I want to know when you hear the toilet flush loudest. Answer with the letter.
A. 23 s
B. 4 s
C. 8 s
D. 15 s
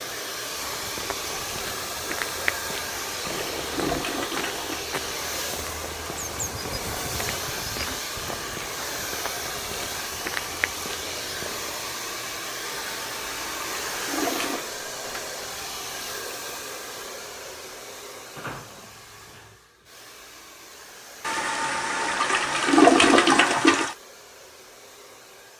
A.